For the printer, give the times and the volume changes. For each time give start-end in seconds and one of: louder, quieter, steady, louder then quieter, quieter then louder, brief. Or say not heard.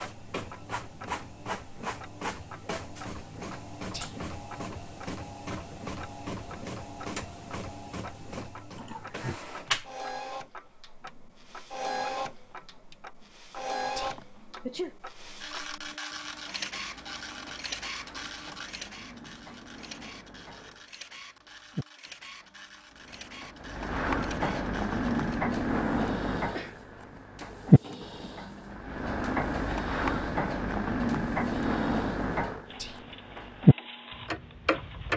0.0-35.1 quieter.